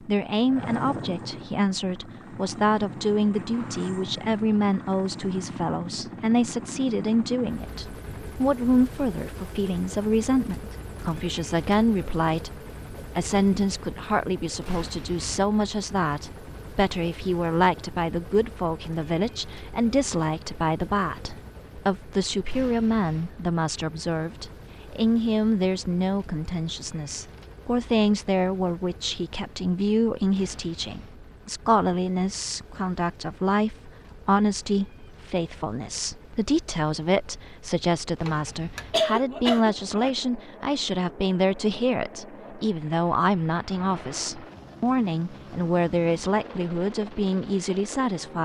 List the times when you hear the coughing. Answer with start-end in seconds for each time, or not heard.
38.2-40.1.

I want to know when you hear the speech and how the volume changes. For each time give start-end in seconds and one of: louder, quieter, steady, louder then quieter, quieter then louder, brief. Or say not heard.
0.0-12.6 steady
13.2-48.4 steady.